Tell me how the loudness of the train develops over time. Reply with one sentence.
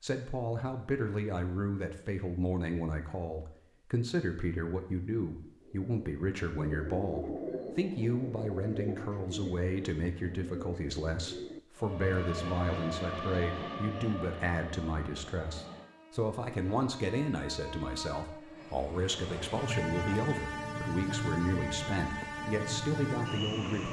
The volume of the train goes down, then up.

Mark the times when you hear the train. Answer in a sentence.
The train can be heard from 11.8 to 23.8 s.